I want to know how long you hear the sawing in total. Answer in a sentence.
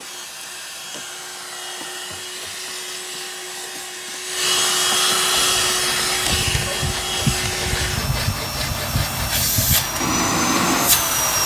You can hear the sawing for 6 seconds altogether.